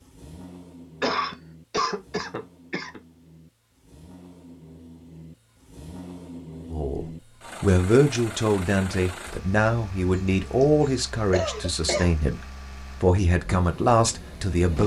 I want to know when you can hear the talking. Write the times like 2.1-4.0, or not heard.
6.7-14.8.